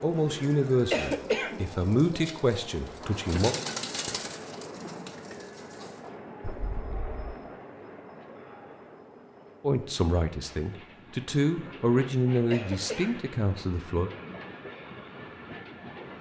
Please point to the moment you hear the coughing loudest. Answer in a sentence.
The volume of the coughing peaks at 1 second.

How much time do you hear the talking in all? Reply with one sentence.
The talking can be heard for 8 seconds in total.